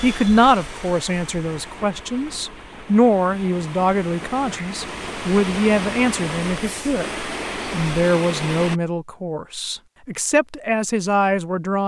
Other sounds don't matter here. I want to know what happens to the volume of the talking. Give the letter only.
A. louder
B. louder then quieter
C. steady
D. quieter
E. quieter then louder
C.